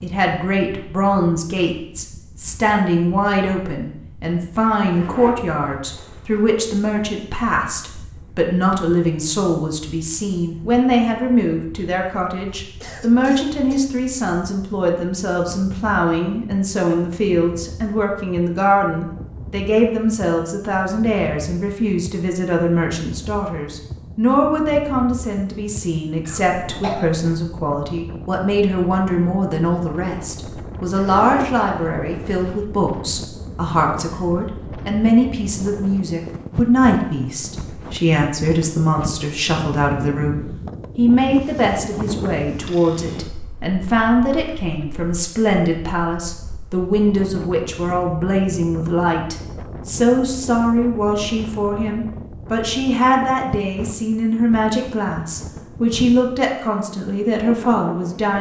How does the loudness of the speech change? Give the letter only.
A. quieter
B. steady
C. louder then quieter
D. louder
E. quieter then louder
B.